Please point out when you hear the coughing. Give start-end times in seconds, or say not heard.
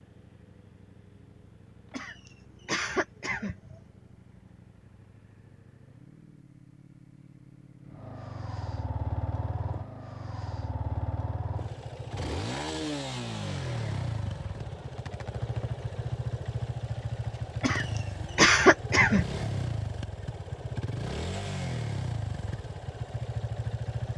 1.9-3.8, 17.6-19.4.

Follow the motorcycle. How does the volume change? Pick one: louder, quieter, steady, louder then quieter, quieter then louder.
louder.